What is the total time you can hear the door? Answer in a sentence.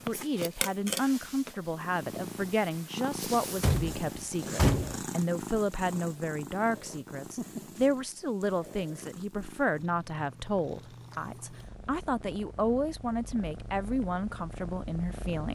The door can be heard for 2 seconds in total.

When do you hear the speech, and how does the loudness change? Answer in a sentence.
The speech can be heard from 0.1 to 15.4 s, at a steady volume.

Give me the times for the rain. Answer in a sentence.
The rain can't be heard in this clip.